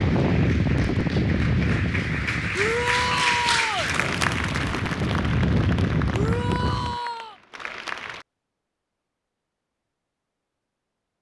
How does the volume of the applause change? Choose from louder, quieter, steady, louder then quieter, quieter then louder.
louder then quieter.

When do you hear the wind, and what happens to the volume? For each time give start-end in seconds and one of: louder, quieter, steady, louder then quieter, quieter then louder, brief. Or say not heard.
0.0-7.0 quieter then louder.